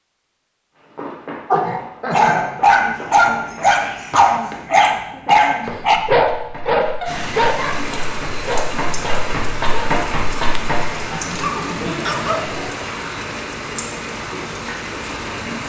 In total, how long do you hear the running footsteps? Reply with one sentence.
The running footsteps can be heard for 10 seconds in total.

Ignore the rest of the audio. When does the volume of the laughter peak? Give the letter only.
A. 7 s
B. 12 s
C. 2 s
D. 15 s
C.